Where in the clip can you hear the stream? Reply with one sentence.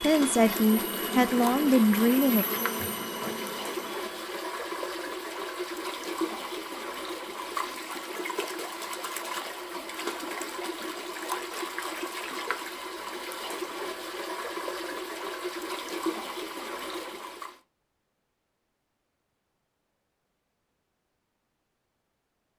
The stream can be heard from 0.0 to 17.6 s.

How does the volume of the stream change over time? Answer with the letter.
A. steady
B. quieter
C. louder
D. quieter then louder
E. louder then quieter
A.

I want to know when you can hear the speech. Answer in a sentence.
You can hear the speech from 0.0 to 2.5 s.